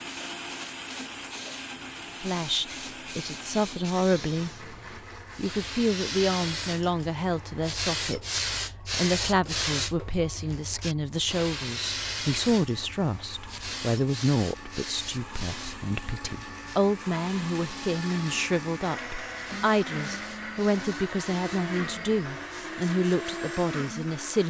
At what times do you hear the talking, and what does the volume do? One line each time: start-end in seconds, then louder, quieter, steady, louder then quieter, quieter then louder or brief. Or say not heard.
2.2-4.7 brief
5.3-24.4 steady.